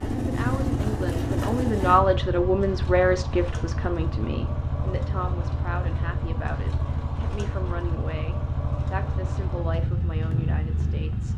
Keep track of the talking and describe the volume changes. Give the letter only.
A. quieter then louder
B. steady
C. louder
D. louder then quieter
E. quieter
E.